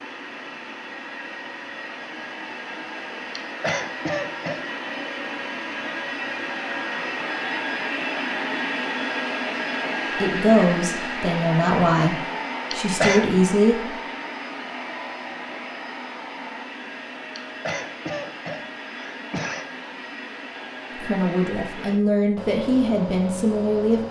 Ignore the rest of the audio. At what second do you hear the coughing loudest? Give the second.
13 s.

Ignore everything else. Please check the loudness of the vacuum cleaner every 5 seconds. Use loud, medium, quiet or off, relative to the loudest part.
medium, loud, loud, medium, medium.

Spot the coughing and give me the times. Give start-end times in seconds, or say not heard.
3.4-4.7, 12.7-13.4, 17.4-19.6.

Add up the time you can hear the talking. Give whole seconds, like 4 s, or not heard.
7 s.